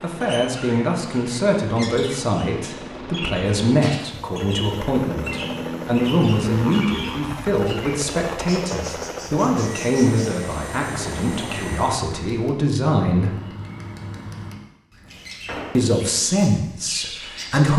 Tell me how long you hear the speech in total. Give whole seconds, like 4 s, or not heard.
15 s.